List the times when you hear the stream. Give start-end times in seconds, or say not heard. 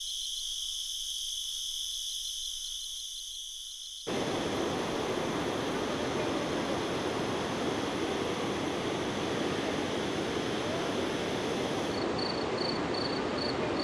4.0-13.8.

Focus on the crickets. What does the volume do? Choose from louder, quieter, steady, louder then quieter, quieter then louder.
quieter.